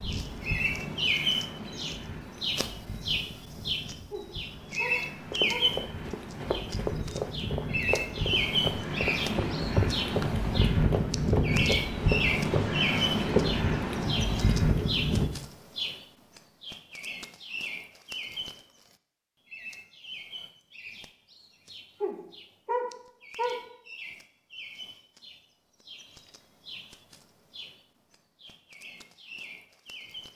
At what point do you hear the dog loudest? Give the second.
23 s.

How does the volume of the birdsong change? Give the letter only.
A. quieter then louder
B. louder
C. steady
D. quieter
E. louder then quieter
D.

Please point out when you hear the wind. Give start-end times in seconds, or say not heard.
0.0-15.3.